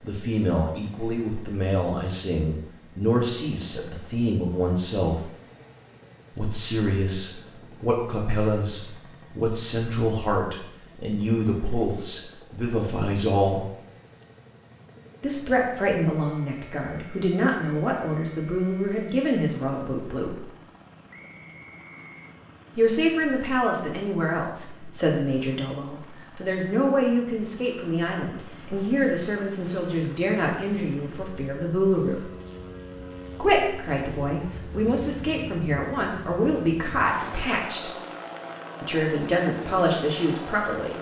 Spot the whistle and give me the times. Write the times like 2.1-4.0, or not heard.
21.1-22.4.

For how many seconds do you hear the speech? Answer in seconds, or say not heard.
34 s.